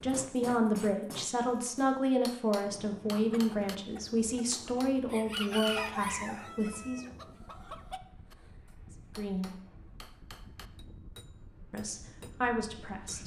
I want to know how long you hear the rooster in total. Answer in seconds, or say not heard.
5 s.